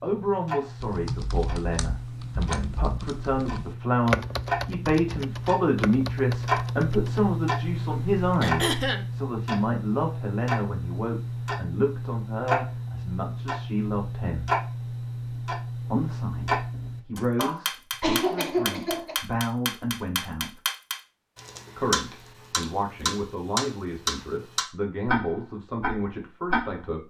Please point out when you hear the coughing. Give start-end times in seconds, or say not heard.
8.4-9.1, 17.4-19.2.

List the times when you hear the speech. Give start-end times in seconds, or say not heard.
0.0-14.6, 15.9-20.6, 21.8-27.0.